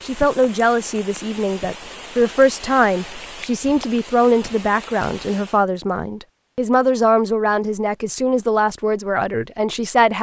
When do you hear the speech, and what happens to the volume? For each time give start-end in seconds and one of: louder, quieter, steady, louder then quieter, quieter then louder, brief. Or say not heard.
0.0-10.1 steady.